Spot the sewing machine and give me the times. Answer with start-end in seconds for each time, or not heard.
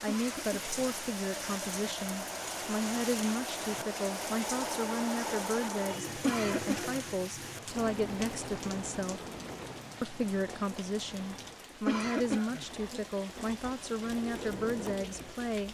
0.1-15.7.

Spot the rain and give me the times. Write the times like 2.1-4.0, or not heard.
0.0-15.7.